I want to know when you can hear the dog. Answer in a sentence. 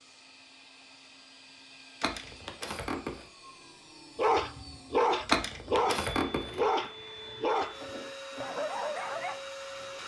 You can hear the dog from 4.2 to 9.4 s.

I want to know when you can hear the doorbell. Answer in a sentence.
You can hear the doorbell from 2.0 to 3.2 s and from 5.2 to 6.7 s.